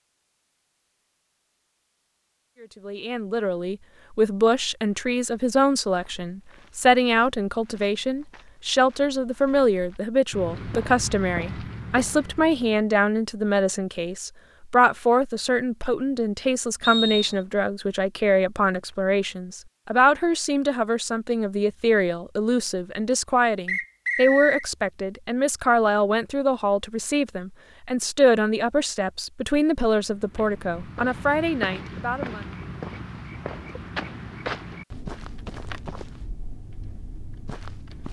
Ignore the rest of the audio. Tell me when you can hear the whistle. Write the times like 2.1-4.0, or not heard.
16.8-17.4, 23.6-24.6.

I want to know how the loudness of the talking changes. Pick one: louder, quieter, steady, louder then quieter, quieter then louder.
steady.